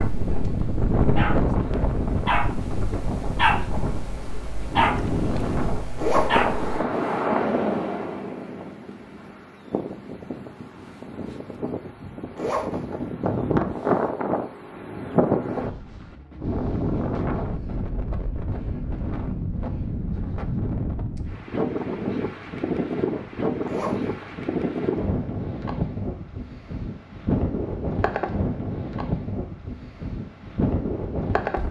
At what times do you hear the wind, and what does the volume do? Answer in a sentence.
The wind can be heard from 0.0 to 31.6 s, at a steady volume.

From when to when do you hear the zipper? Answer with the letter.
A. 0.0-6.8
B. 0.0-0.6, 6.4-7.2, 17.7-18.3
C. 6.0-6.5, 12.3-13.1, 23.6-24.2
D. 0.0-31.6
C.